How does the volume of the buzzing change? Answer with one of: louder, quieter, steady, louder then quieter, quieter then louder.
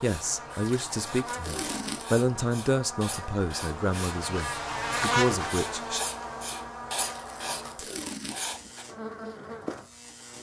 louder then quieter.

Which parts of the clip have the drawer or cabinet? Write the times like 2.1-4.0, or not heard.
not heard.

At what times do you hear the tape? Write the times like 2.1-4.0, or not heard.
0.6-2.2, 7.0-8.7.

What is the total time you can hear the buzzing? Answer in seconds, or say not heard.
10 s.